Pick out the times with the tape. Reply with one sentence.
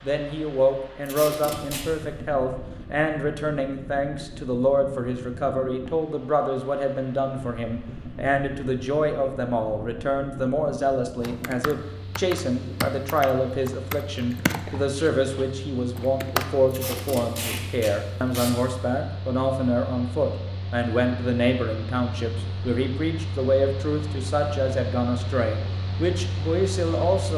You can hear the tape from 1.1 to 1.9 s and from 16.7 to 18.6 s.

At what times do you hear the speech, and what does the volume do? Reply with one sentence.
You can hear the speech from 0.0 to 27.3 s, at a steady volume.